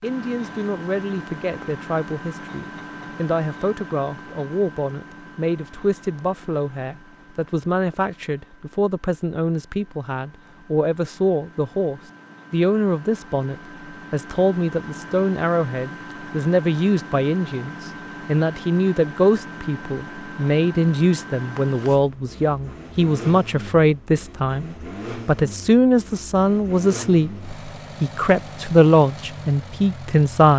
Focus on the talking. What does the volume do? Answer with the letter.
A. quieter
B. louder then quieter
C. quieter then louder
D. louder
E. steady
D.